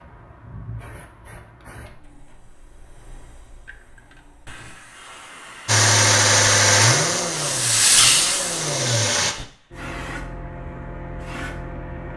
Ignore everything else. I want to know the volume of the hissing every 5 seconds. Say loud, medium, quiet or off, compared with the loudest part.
quiet, loud, medium.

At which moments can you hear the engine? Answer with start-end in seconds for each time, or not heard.
5.7-9.3.